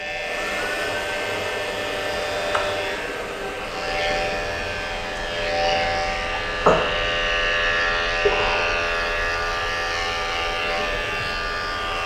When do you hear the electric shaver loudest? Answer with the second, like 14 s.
8 s.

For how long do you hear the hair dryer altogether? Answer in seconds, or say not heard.
12 s.